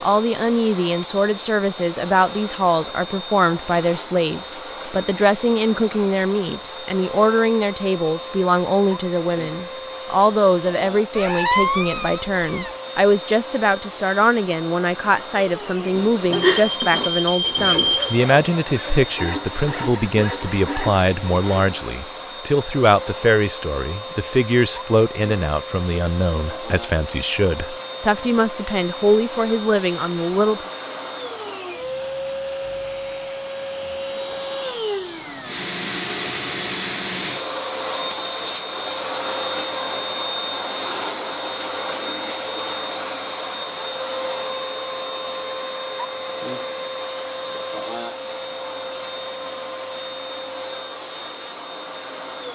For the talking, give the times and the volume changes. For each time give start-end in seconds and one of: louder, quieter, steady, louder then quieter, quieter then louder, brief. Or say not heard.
0.0-30.6 steady.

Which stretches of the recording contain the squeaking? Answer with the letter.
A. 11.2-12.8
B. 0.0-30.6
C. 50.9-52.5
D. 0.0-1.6
A.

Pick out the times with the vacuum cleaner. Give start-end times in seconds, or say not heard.
0.0-52.5.